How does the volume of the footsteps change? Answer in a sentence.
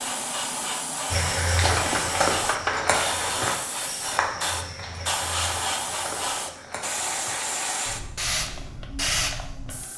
The volume of the footsteps goes down.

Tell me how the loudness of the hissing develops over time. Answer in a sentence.
The volume of the hissing stays about the same.